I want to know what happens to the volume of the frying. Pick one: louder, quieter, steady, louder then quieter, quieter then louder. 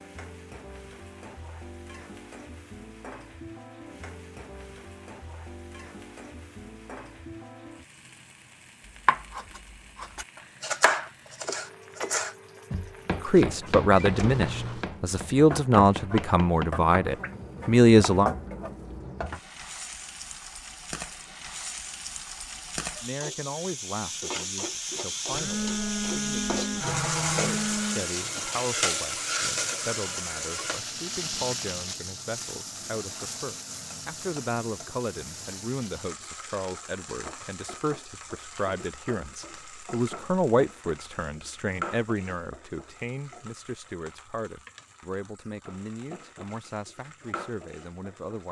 louder then quieter.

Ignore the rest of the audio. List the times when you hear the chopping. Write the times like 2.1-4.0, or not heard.
9.1-18.3.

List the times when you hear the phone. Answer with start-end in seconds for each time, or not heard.
13.9-14.8, 25.3-28.1.